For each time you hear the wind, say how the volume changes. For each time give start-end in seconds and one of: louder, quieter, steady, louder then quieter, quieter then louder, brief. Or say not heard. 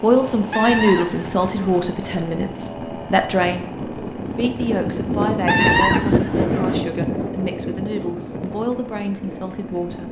0.0-10.0 louder then quieter.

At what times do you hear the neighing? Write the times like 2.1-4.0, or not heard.
0.5-1.8, 5.5-6.8.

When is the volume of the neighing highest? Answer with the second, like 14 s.
6 s.